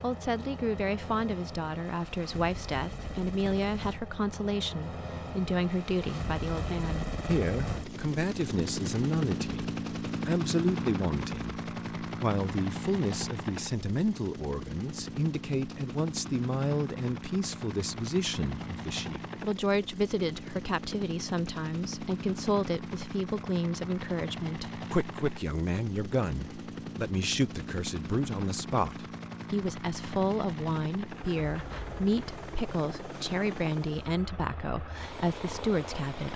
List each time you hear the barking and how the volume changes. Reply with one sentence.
You can't hear the barking here.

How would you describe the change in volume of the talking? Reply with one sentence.
The loudness of the talking stays about the same.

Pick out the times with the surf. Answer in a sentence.
The surf can't be heard in this clip.